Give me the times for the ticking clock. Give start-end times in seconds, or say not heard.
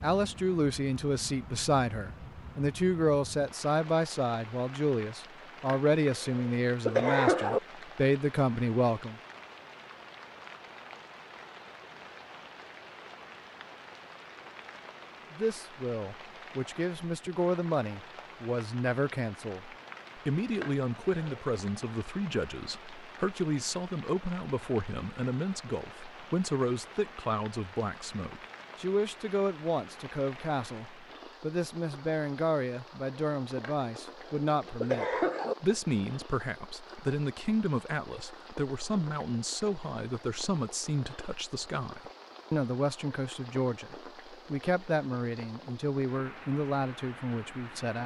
not heard.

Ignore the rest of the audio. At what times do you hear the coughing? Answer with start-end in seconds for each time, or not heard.
5.7-7.6, 20.6-21.4, 33.6-35.5.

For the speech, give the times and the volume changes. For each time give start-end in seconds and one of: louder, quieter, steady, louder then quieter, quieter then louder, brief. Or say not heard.
0.0-9.2 steady
15.3-48.0 steady.